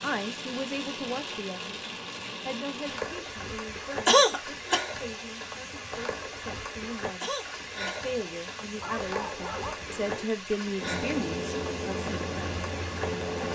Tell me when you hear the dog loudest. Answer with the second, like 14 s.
9 s.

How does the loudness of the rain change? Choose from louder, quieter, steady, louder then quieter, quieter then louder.
steady.